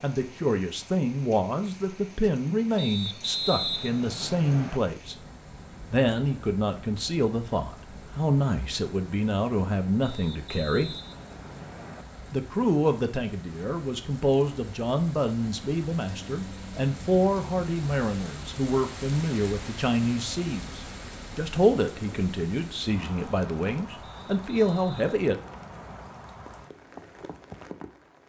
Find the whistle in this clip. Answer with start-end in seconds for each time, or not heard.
2.8-4.8, 10.0-12.1, 24.0-26.1.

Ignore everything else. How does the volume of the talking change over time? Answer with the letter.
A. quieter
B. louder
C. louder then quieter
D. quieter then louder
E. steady
E.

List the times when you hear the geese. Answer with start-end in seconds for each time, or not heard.
not heard.